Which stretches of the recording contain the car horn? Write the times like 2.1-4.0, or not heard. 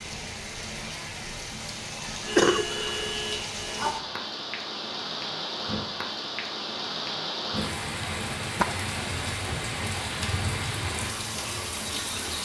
2.4-3.9.